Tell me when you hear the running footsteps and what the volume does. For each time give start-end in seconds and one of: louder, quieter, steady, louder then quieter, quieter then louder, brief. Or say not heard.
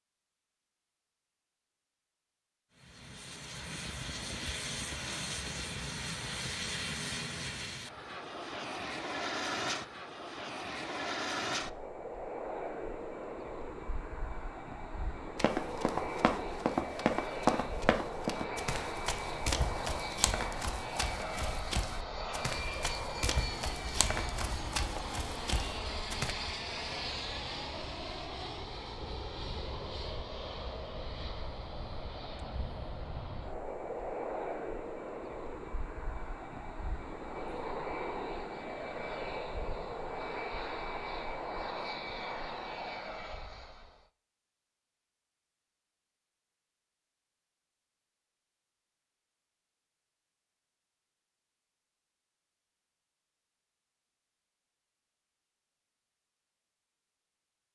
15.3-26.4 quieter.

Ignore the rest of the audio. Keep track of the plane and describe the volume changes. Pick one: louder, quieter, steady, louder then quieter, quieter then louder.
steady.